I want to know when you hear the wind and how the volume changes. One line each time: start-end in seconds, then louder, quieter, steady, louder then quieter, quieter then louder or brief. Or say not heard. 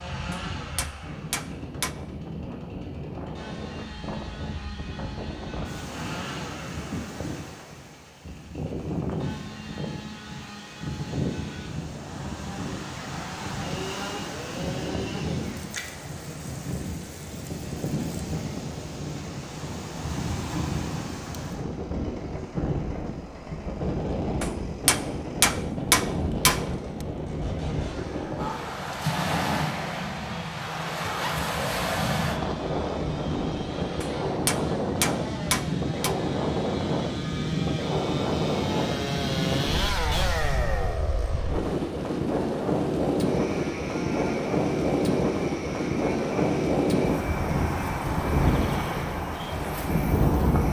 0.0-50.6 louder.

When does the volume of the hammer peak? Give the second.
26 s.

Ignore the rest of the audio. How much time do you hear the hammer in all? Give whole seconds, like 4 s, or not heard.
6 s.